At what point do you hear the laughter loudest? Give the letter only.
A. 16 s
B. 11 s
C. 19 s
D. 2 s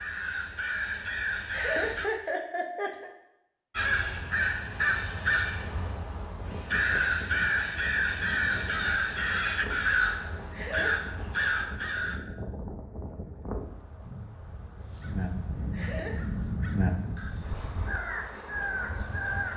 D.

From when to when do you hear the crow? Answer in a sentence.
You can hear the crow from 0.0 to 2.1 s, from 3.8 to 12.2 s and from 15.0 to 19.5 s.